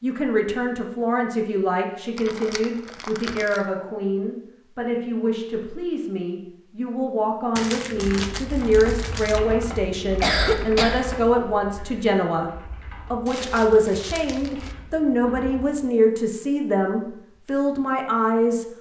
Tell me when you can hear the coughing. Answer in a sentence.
The coughing can be heard from 10.2 to 11.1 s.